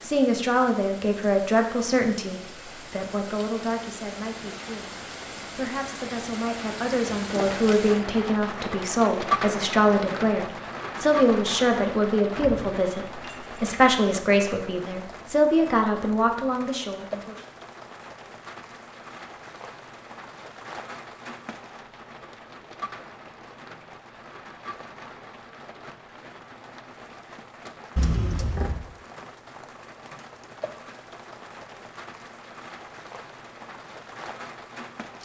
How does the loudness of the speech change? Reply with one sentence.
The loudness of the speech goes down, then up.